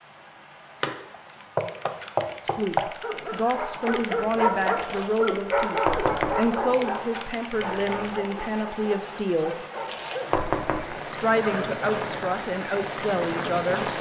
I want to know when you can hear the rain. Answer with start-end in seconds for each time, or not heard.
0.0-13.9.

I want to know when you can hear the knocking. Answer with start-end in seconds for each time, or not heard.
0.8-2.8, 5.8-6.5, 10.3-10.9.